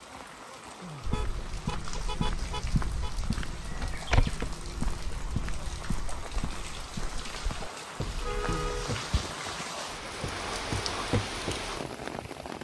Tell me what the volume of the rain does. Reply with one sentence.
The volume of the rain goes up.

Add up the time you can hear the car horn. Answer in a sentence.
The car horn can be heard for 3 seconds in total.